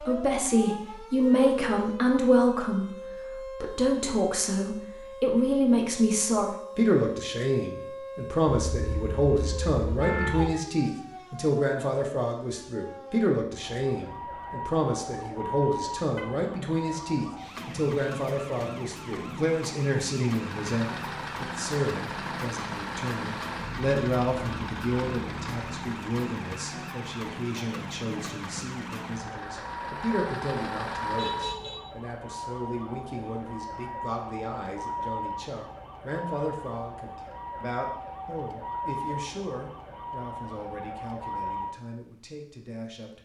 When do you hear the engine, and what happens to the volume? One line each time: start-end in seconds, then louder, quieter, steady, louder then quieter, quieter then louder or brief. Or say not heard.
20.2-31.8 quieter then louder.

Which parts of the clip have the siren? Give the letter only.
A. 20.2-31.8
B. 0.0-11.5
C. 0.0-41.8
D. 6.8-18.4
C.